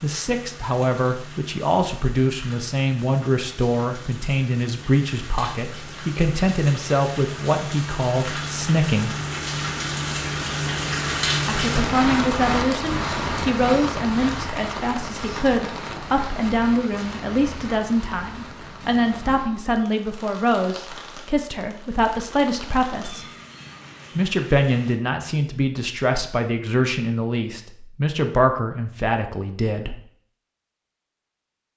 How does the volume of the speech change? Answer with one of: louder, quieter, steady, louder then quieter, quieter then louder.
steady.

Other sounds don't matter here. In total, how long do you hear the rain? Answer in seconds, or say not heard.
25 s.